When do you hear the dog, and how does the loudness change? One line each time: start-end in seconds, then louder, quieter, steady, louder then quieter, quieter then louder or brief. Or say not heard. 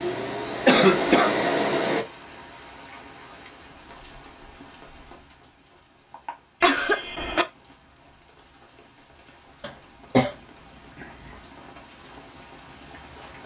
not heard.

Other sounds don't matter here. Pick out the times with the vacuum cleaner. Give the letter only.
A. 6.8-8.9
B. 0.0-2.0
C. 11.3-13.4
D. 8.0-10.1
B.